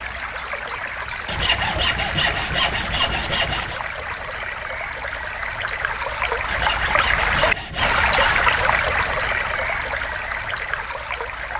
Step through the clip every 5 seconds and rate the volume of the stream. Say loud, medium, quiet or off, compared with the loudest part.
medium, loud, medium.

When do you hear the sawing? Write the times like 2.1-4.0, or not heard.
1.2-3.8, 6.5-8.5.